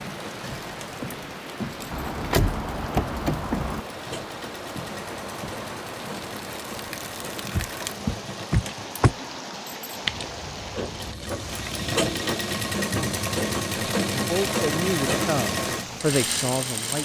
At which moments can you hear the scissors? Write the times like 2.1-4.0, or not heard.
10.1-11.8.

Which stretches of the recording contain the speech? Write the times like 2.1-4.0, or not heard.
14.1-17.0.